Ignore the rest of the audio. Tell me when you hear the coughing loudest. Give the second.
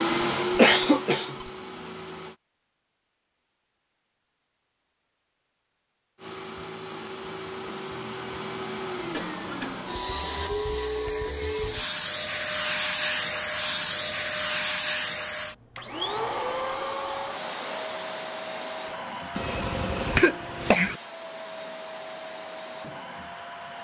1 s.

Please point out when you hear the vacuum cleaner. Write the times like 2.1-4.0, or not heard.
0.0-2.4, 6.2-23.7.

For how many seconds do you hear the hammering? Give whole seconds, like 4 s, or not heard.
not heard.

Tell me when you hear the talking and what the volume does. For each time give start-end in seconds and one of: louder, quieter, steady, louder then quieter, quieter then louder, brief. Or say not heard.
not heard.